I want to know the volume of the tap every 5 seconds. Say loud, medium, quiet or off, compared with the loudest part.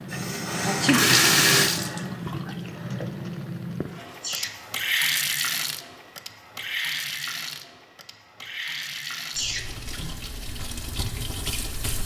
loud, medium, medium.